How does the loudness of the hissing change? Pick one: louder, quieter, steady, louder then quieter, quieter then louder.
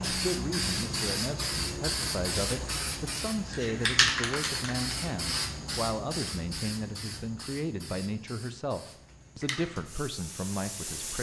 quieter.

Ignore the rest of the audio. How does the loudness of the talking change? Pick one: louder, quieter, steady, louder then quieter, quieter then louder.
steady.